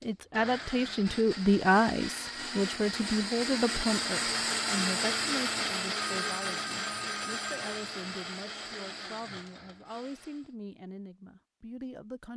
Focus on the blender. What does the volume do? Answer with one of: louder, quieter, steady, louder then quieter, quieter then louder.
louder then quieter.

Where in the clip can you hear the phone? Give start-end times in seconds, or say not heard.
5.9-7.8.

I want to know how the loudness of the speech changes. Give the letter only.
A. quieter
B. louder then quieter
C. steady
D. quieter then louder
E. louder
A.